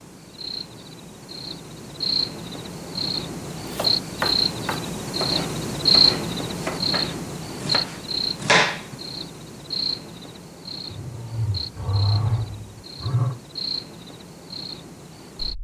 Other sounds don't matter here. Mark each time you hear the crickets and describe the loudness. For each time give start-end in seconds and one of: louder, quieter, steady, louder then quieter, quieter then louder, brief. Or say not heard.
0.0-15.5 louder then quieter.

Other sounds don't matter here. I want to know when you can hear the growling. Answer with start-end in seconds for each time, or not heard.
10.9-13.4.